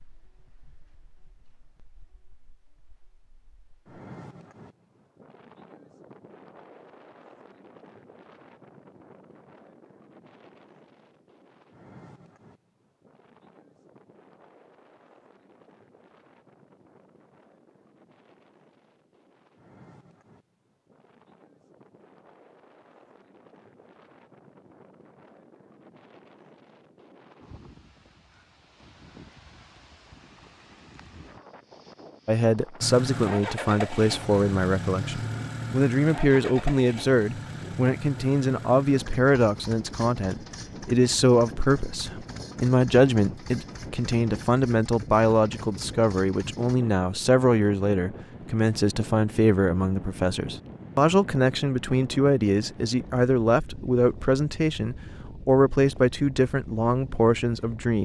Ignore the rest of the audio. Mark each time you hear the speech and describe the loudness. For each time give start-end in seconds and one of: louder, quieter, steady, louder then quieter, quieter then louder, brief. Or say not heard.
32.2-57.9 steady.